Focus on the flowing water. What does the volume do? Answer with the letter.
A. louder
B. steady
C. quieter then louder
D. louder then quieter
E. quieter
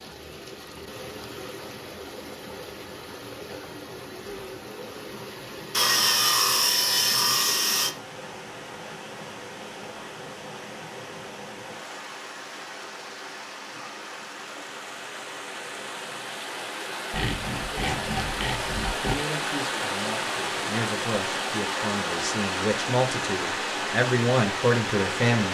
A.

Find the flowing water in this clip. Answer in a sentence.
You can hear the flowing water from 0.0 to 25.4 s.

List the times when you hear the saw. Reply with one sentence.
The saw can be heard from 5.7 to 8.0 s and from 17.1 to 19.1 s.